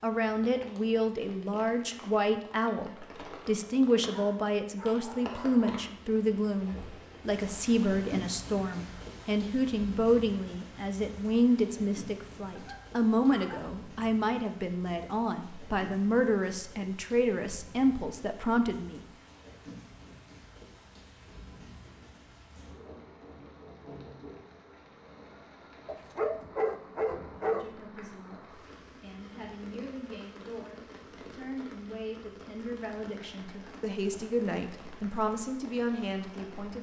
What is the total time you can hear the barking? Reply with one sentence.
The barking can be heard for 5 seconds in total.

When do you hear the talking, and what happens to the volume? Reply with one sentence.
You can hear the talking from 0.0 to 19.0 s, at a steady volume; and from 27.4 to 36.7 s, getting louder.